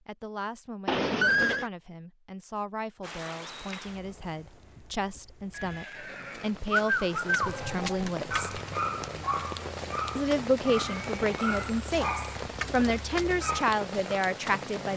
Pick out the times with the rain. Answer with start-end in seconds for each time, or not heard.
3.0-14.9.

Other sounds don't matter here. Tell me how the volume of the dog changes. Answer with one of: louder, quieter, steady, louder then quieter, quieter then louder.
quieter.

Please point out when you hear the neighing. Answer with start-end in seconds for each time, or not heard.
0.8-1.7, 5.5-7.8, 10.9-11.7.